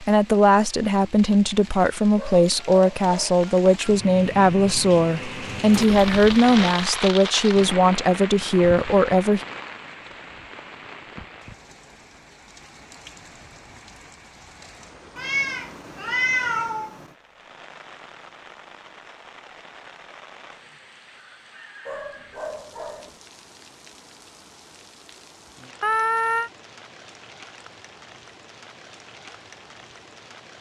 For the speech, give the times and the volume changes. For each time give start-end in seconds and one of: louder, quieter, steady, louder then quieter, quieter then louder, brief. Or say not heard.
0.0-9.4 steady.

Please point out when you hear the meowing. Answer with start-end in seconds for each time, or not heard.
5.7-6.8, 15.2-17.1, 25.8-26.5.